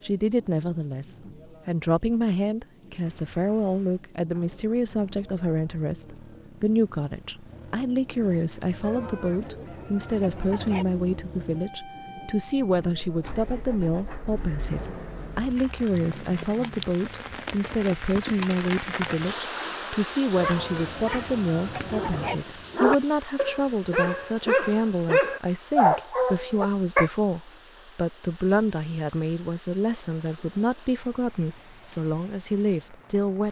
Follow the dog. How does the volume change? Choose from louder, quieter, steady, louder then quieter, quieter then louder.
louder.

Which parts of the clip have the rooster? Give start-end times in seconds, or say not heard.
8.8-10.8, 20.4-22.4.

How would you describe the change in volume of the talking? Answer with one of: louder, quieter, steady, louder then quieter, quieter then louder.
steady.